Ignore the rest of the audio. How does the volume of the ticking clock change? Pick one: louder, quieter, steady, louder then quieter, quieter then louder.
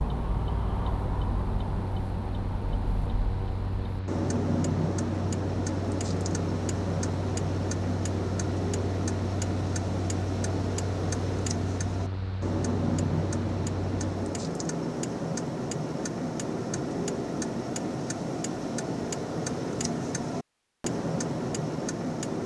steady.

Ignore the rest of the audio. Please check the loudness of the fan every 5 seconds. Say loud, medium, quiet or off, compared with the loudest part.
loud, loud, loud, off, off.